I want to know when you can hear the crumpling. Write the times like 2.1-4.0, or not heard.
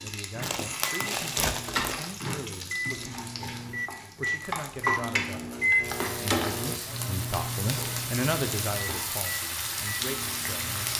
0.4-2.1.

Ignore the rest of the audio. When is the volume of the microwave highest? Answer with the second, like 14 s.
5 s.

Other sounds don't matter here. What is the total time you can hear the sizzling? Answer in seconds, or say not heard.
11 s.